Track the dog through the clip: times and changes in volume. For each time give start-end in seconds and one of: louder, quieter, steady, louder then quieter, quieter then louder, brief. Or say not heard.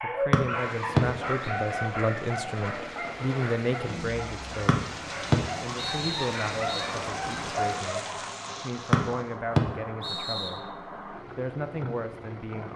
0.0-8.3 quieter then louder.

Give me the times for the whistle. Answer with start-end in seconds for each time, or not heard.
0.3-1.5, 4.7-6.9, 8.9-10.6.